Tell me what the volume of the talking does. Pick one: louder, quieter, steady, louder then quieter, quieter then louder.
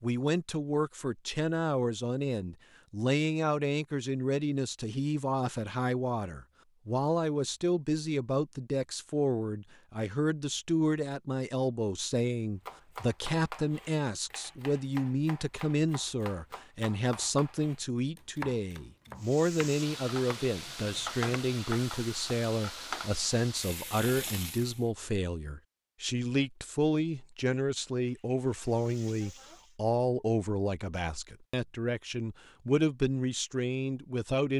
steady.